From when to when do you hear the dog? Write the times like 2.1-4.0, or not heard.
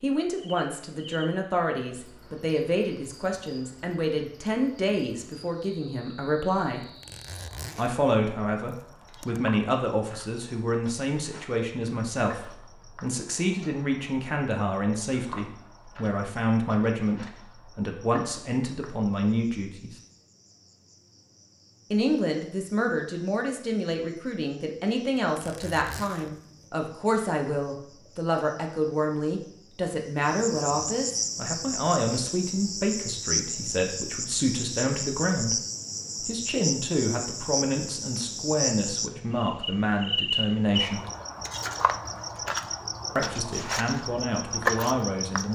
not heard.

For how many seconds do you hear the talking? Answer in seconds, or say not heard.
40 s.